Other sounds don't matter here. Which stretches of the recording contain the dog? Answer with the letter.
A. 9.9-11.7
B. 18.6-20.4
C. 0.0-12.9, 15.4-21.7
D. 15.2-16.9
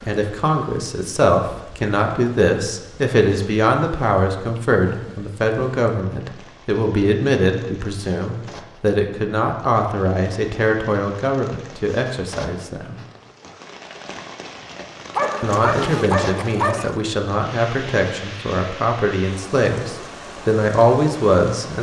D.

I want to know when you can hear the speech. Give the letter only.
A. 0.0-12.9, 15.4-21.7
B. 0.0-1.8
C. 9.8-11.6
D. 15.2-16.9
A.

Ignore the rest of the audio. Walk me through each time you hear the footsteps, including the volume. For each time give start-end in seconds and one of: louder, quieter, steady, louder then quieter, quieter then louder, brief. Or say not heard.
not heard.